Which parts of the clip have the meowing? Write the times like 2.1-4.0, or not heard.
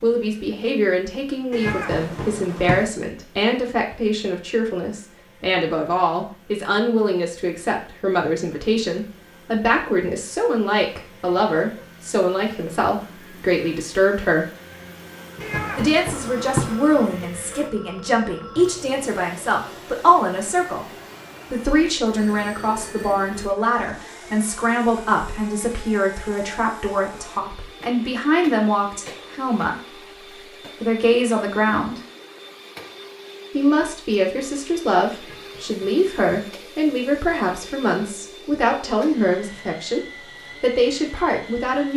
1.5-2.9, 15.4-16.8, 35.1-36.5.